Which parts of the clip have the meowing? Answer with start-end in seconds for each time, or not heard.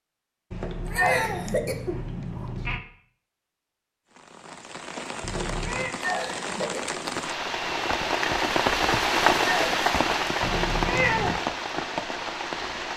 0.5-2.8, 5.2-6.0, 10.4-11.4.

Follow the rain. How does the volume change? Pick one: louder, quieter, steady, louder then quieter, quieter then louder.
louder then quieter.